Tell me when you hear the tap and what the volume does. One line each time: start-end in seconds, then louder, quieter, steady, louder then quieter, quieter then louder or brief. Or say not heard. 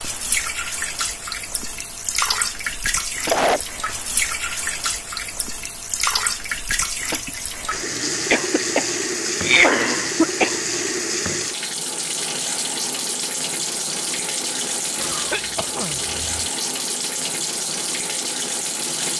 0.0-19.1 steady.